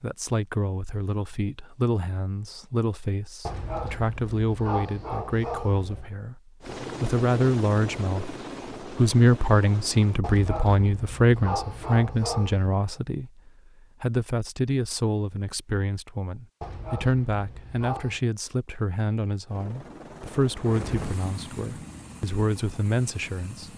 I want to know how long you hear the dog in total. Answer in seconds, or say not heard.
7 s.